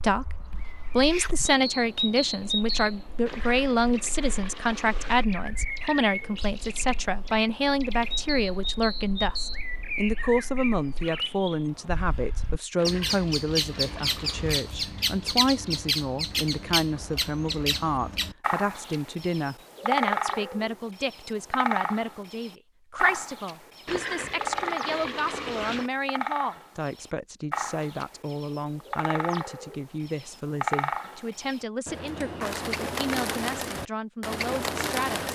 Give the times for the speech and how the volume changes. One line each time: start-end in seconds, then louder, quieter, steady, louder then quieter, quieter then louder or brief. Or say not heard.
0.0-35.3 quieter.